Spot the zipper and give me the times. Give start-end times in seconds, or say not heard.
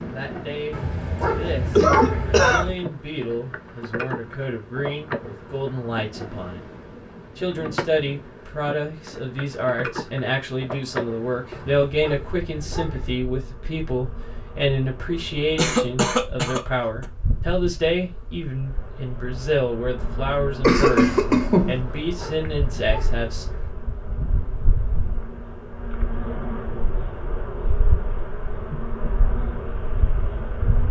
not heard.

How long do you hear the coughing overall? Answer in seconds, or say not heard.
4 s.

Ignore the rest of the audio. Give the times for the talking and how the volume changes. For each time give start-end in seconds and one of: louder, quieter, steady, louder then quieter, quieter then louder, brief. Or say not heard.
0.0-6.7 steady
7.3-23.4 steady.